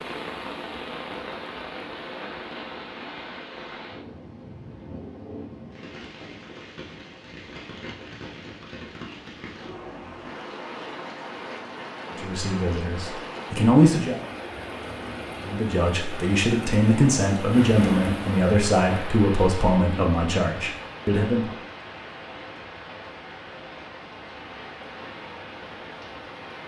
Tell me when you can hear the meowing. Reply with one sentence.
The meowing can't be heard in this clip.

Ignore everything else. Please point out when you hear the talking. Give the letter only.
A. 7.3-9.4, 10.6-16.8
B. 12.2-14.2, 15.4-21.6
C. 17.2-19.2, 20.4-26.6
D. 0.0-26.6
B.